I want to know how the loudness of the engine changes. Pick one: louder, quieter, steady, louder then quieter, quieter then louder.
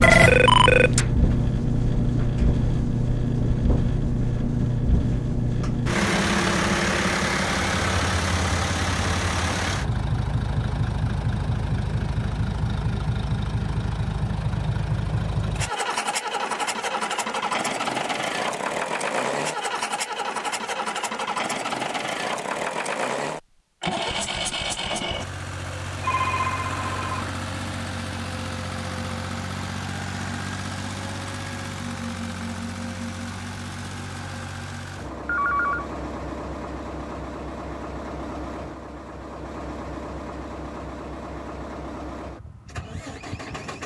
quieter.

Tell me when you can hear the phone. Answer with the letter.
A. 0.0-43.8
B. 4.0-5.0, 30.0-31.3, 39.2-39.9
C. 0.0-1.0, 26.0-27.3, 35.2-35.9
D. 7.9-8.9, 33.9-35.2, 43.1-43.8
C.